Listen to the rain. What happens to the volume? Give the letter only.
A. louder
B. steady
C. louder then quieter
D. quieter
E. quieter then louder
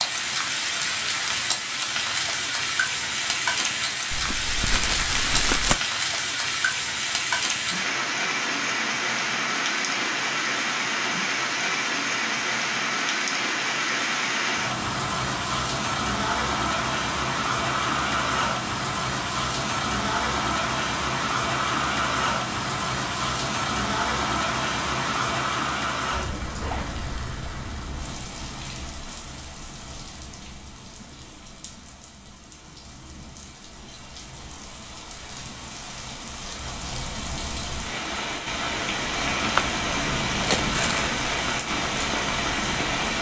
E.